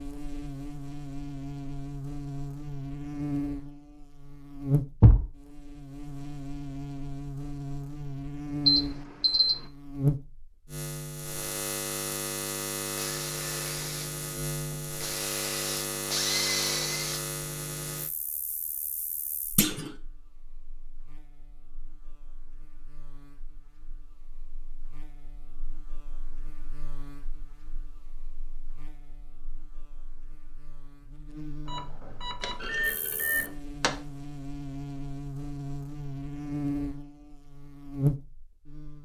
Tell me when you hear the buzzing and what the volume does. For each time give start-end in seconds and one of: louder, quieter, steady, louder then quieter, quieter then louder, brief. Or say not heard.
0.0-39.0 quieter then louder.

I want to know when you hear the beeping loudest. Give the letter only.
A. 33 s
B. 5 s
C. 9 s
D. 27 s
C.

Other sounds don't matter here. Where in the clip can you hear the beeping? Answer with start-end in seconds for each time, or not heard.
8.7-9.6, 31.6-33.5.